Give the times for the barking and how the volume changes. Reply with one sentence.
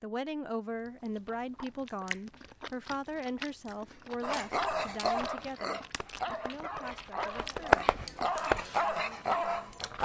The barking can be heard from 4.2 to 10.0 s, getting quieter then louder.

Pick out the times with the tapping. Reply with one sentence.
You can hear the tapping from 5.2 to 8.6 s.